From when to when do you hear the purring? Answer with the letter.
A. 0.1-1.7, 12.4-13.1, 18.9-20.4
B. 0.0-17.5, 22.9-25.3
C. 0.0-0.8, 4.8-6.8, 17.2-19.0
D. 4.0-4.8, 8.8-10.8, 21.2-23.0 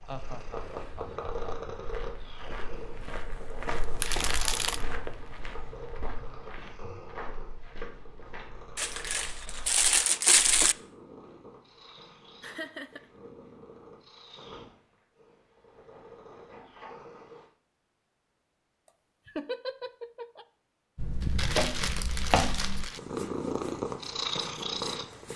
B.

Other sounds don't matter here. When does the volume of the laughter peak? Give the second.
20 s.